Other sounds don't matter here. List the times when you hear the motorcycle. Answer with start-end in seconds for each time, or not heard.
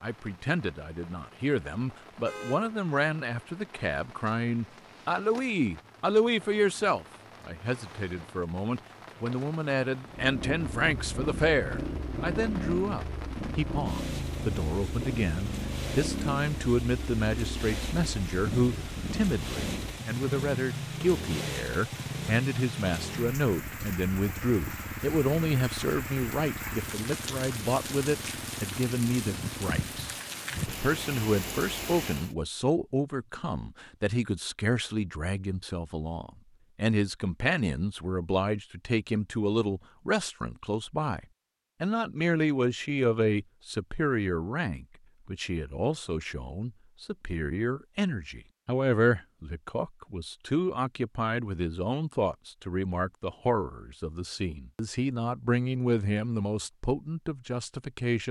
10.1-30.2.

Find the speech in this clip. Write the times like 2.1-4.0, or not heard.
0.0-58.2.